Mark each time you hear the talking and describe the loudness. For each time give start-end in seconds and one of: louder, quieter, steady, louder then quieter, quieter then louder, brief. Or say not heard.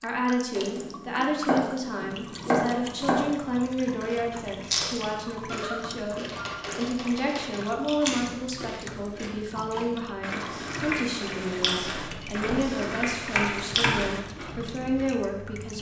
0.0-15.7 steady.